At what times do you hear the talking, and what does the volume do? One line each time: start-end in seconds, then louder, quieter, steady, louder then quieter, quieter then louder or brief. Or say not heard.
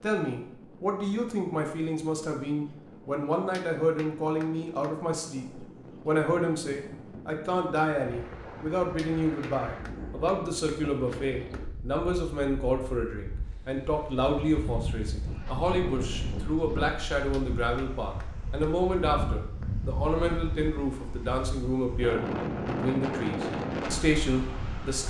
0.0-25.0 steady.